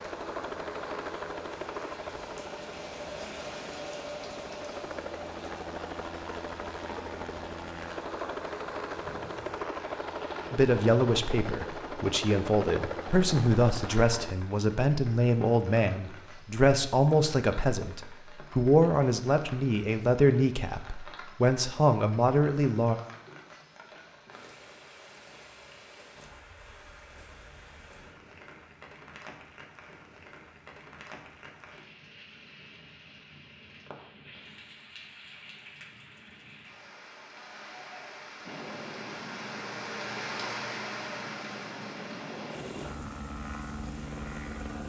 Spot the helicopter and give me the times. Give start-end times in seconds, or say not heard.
0.0-14.3, 38.5-44.8.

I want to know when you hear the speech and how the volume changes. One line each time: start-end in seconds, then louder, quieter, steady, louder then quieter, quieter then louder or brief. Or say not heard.
10.5-22.9 steady.